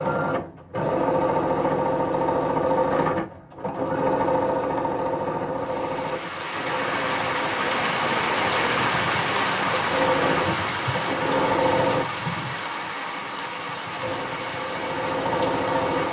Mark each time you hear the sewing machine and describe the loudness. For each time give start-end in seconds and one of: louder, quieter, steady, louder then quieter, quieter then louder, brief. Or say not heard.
0.0-12.1 quieter then louder
14.0-16.0 brief.